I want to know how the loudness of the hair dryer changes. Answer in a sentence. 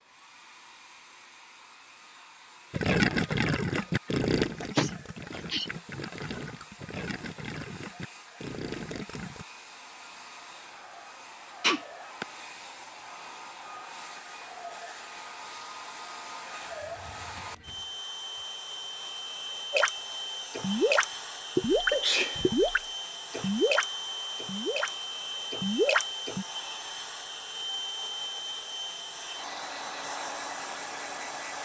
The loudness of the hair dryer goes up.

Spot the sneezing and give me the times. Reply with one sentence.
You can hear the sneezing from 4.6 to 5.7 s, from 11.6 to 12.2 s and from 21.9 to 22.4 s.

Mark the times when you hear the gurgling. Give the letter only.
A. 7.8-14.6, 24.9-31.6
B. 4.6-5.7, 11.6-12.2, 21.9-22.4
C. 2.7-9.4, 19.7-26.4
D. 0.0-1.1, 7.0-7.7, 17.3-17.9
C.